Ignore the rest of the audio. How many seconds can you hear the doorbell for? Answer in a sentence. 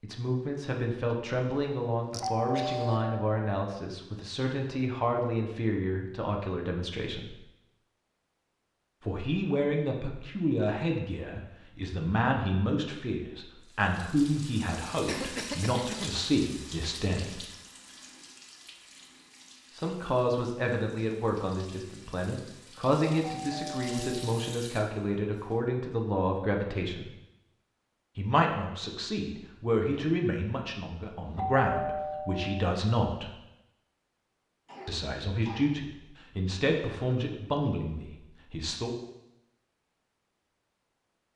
You can hear the doorbell for 4 seconds altogether.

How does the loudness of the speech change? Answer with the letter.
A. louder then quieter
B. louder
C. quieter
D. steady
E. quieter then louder
D.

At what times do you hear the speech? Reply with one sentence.
You can hear the speech from 0.0 to 7.3 s, from 9.1 to 17.4 s, from 19.7 to 27.1 s, from 28.1 to 33.3 s and from 34.9 to 39.0 s.